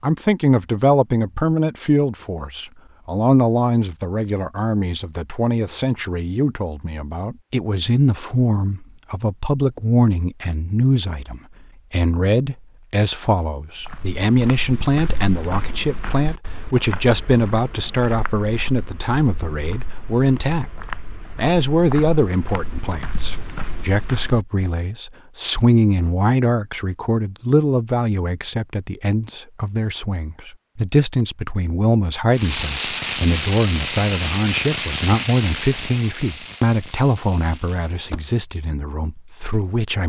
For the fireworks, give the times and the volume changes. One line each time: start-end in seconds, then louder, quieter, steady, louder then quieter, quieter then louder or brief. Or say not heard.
32.3-38.4 quieter.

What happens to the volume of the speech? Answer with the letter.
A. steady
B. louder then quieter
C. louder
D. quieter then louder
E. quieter
A.